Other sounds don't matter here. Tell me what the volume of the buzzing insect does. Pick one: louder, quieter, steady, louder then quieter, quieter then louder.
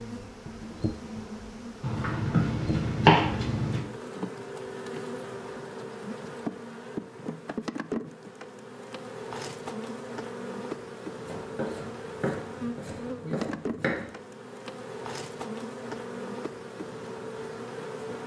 steady.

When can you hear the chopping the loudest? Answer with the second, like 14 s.
3 s.